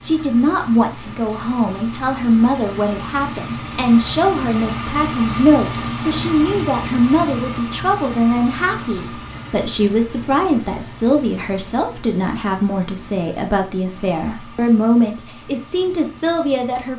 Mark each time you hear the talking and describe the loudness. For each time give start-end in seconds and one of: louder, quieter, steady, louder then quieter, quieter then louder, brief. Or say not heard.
0.0-16.9 steady.